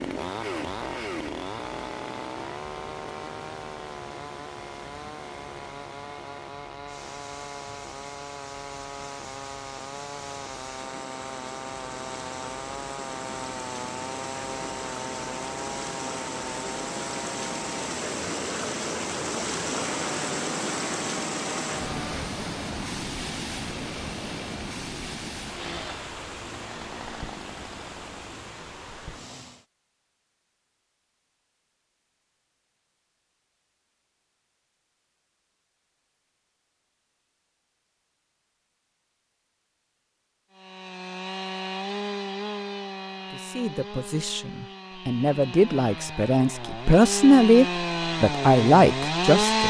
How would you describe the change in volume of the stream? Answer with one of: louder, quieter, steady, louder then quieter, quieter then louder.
louder then quieter.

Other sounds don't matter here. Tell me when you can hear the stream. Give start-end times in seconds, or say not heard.
0.0-29.6.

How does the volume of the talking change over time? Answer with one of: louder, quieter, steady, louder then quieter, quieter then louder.
louder.